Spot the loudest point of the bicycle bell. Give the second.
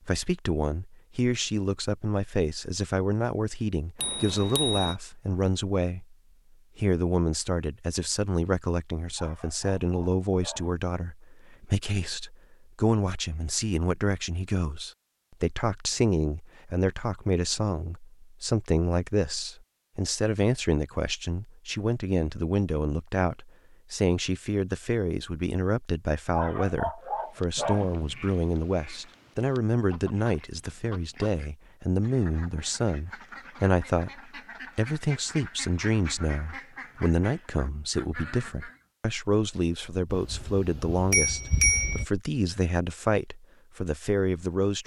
42 s.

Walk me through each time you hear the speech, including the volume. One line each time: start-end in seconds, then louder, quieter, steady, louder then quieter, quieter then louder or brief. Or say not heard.
0.1-6.2 steady
6.8-44.8 steady.